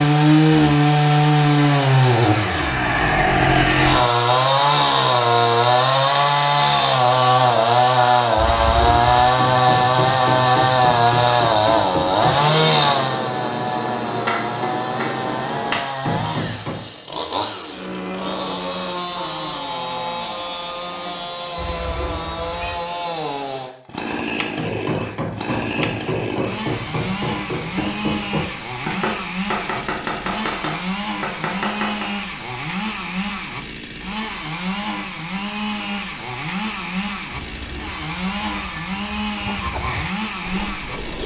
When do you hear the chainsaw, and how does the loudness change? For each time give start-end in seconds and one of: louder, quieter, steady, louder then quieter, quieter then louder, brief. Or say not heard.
0.0-41.2 quieter.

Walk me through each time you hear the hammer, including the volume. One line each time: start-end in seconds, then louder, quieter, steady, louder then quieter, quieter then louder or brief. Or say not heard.
9.3-16.9 steady
24.6-32.1 steady.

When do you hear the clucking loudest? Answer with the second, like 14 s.
40 s.